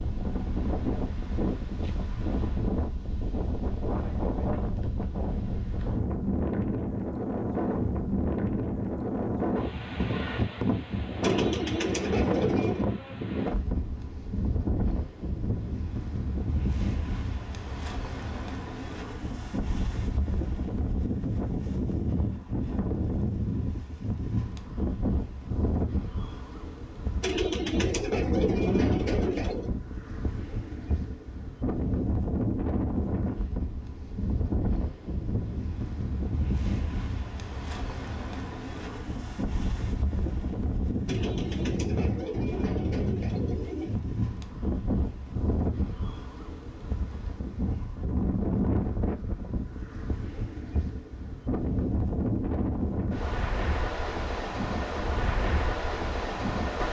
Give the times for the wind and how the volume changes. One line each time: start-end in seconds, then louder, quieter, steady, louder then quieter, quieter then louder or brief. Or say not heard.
0.0-56.8 steady.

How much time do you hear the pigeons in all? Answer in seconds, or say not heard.
7 s.